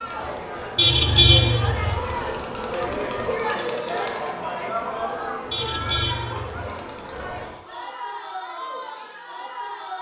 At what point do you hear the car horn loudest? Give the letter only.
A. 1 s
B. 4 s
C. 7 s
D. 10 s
A.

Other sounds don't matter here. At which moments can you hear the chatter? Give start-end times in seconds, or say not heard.
0.0-9.9.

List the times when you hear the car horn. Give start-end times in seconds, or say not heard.
0.8-1.9, 5.5-6.7.